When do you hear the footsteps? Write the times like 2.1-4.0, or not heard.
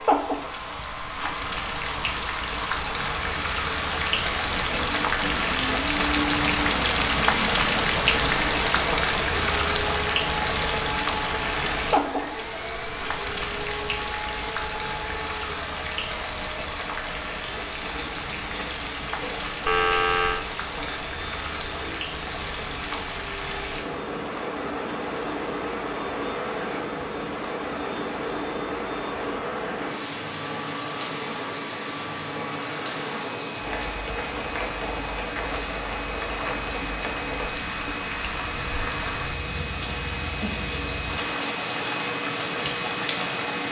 not heard.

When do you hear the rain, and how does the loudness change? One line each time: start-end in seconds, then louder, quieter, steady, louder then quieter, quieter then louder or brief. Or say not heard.
0.0-43.6 quieter.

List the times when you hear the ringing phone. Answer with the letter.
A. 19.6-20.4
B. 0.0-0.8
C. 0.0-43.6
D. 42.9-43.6
A.